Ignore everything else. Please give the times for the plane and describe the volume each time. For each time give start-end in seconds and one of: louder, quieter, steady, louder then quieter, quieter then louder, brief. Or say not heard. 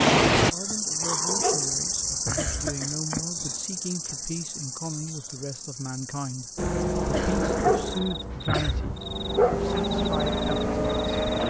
6.5-11.4 quieter then louder.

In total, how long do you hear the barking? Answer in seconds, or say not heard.
4 s.